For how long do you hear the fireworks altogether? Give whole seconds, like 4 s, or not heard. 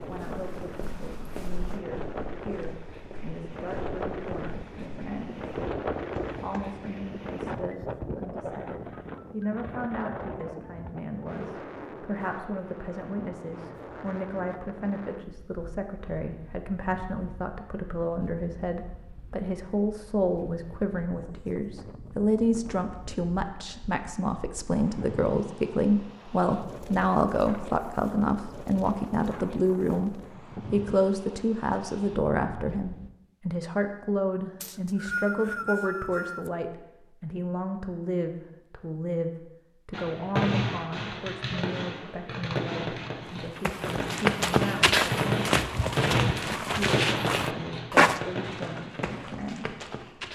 9 s.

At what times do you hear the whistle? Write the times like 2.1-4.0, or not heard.
34.6-36.5.